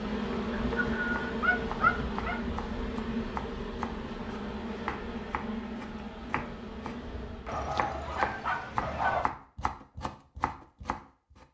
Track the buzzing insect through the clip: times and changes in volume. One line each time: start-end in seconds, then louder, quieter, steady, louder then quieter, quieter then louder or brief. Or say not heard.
0.0-7.7 quieter.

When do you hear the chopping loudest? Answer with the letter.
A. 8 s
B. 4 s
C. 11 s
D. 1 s
A.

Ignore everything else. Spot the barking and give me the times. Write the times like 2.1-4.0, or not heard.
0.5-2.4, 7.5-9.3.